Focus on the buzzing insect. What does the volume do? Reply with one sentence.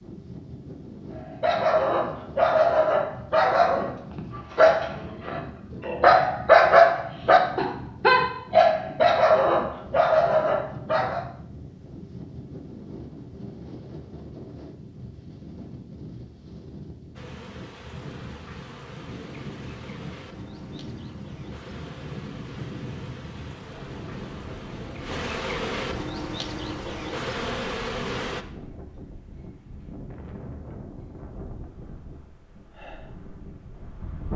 The volume of the buzzing insect goes up.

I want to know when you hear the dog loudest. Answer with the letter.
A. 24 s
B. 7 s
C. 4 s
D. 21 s
B.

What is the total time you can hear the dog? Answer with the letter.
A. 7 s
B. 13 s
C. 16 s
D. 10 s
D.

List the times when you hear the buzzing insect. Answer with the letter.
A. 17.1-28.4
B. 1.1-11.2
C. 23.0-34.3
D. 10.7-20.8
A.